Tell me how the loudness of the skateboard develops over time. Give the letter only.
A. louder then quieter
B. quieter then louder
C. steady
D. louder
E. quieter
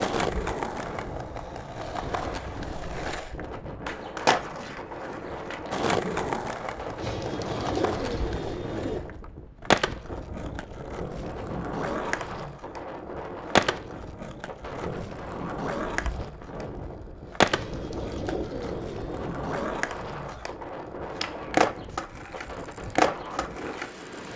C.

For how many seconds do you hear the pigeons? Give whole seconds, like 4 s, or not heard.
4 s.